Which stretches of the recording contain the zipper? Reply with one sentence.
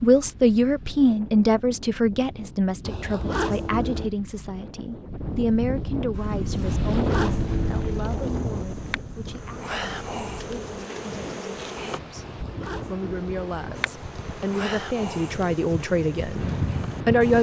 You can hear the zipper from 2.8 to 4.1 s, from 6.6 to 8.7 s and from 12.2 to 13.7 s.